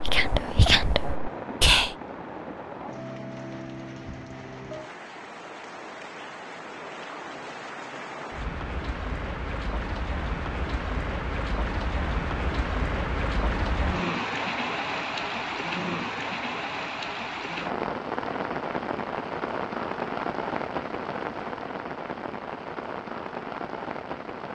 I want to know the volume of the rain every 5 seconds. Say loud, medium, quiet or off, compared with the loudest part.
medium, medium, loud, loud, loud.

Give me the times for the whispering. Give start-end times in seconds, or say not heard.
0.0-1.9.